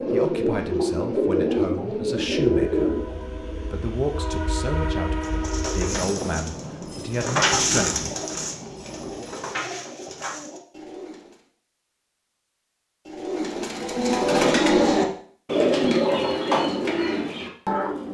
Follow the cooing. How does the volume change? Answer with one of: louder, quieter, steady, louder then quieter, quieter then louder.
quieter then louder.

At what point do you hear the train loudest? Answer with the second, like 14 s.
5 s.